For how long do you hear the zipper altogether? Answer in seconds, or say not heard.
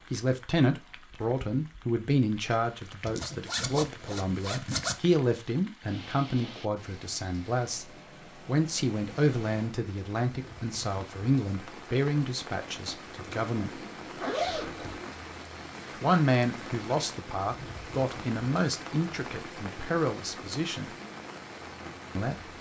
4 s.